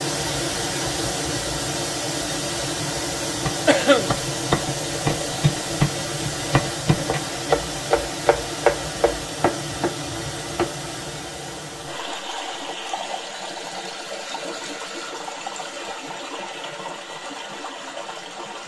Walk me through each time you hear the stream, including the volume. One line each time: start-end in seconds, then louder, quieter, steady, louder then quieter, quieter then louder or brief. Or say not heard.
0.0-18.6 quieter.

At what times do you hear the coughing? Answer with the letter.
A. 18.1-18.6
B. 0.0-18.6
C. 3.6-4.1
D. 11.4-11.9
C.